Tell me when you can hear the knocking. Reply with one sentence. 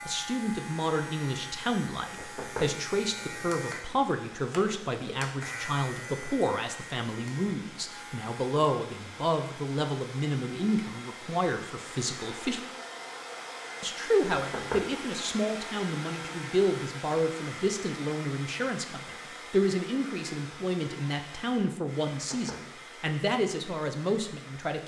The knocking can be heard from 2.1 to 2.9 s, from 14.3 to 15.0 s and from 22.1 to 22.8 s.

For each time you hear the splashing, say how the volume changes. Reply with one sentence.
You can't hear the splashing here.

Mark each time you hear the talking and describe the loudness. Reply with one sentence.
The talking can be heard from 0.1 to 12.6 s, at a steady volume; and from 13.8 to 24.8 s, at a steady volume.